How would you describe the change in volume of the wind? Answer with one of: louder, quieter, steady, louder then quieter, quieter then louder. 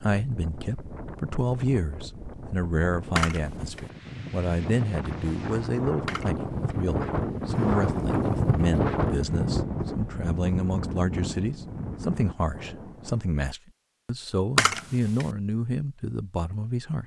louder then quieter.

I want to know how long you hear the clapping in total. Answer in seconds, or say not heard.
not heard.